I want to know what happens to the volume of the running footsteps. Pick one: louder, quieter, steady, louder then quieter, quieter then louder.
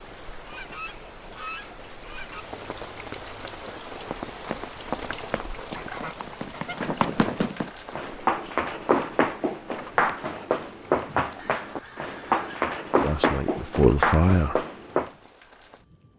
louder.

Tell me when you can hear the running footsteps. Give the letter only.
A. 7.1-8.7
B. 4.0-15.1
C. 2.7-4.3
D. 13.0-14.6
B.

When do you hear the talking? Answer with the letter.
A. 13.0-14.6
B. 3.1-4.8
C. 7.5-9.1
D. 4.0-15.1
A.